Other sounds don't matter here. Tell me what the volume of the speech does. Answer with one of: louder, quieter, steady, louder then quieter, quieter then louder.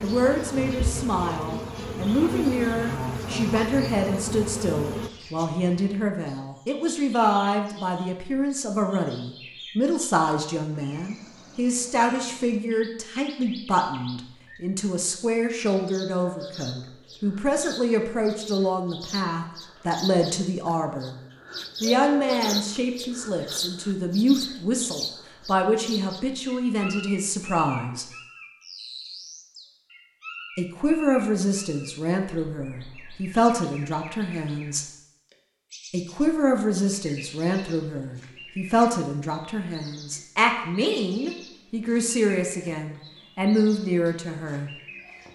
steady.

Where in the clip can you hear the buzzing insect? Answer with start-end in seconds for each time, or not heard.
0.0-5.1.